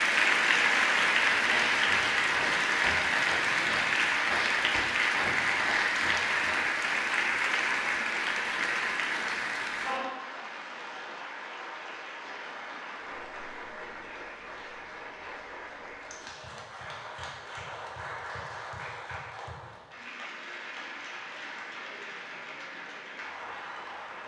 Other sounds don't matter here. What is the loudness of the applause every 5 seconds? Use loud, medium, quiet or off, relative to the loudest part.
loud, loud, quiet, quiet, quiet.